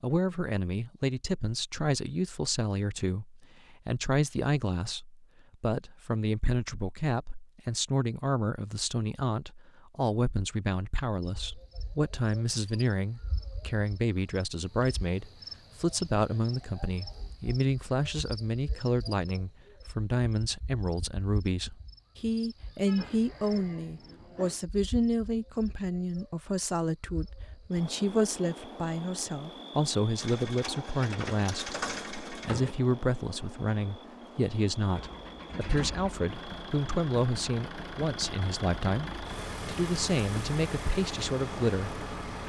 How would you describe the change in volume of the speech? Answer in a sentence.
The loudness of the speech stays about the same.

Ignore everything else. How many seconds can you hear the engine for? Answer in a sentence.
You can hear the engine for 10 seconds altogether.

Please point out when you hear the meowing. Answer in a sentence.
You can't hear the meowing here.